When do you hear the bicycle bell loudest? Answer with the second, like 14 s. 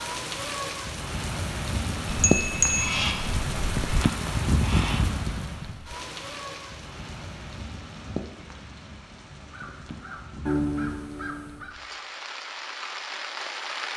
3 s.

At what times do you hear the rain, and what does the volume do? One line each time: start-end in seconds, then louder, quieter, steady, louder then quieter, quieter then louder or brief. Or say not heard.
0.0-13.9 quieter then louder.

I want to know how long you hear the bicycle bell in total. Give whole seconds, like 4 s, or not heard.
2 s.